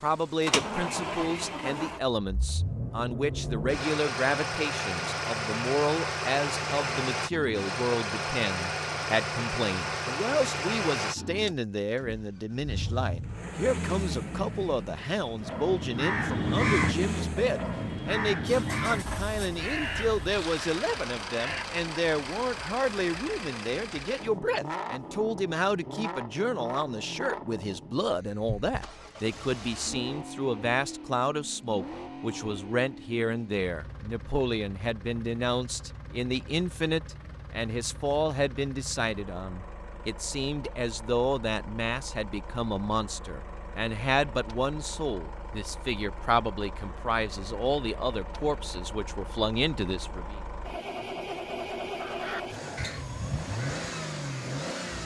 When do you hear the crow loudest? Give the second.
17 s.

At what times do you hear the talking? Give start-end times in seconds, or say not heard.
0.0-50.4.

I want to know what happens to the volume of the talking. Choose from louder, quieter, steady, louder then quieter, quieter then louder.
steady.